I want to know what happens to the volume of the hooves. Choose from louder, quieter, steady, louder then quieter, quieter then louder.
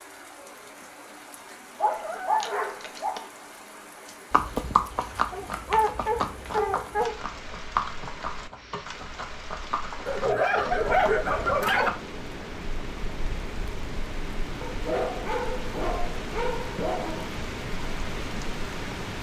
quieter.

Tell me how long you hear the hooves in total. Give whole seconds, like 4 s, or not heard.
8 s.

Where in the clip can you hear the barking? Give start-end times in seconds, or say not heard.
1.8-3.2, 5.3-7.2, 10.1-11.9, 14.6-17.2.